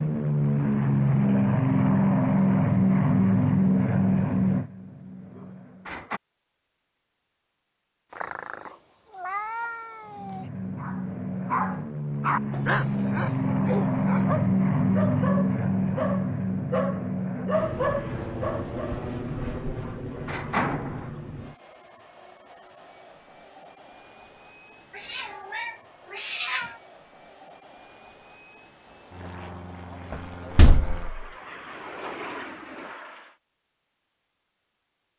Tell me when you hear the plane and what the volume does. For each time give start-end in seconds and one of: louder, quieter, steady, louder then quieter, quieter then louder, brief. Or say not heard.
0.0-6.0 quieter
10.1-33.4 quieter then louder.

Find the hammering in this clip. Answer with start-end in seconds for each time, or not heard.
not heard.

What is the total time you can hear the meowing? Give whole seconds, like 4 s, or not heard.
4 s.